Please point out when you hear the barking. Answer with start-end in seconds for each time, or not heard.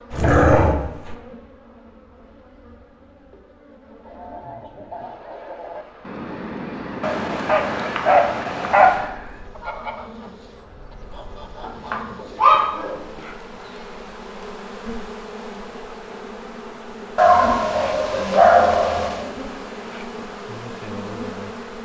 0.1-1.1, 7.0-9.1, 11.6-13.0, 17.1-19.3.